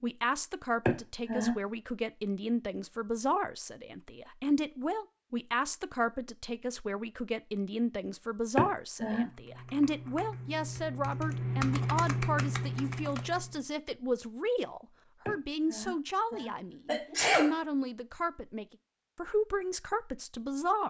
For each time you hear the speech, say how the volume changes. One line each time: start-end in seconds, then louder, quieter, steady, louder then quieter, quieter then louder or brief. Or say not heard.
0.0-20.8 steady.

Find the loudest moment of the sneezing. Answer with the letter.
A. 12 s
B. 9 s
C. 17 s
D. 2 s
C.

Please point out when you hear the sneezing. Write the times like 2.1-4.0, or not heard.
0.8-1.6, 8.6-9.3, 15.2-17.6.